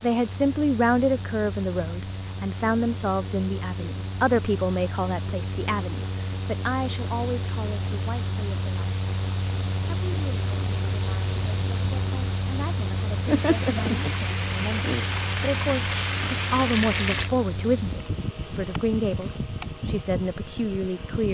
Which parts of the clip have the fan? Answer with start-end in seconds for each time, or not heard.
0.0-21.2.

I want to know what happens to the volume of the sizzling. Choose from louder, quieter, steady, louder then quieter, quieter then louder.
steady.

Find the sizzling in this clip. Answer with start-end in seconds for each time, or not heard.
13.2-17.3.